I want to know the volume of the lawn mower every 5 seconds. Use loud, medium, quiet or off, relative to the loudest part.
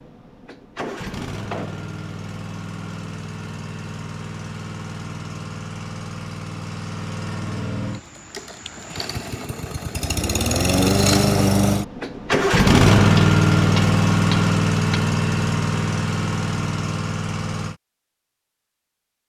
quiet, quiet, loud, medium.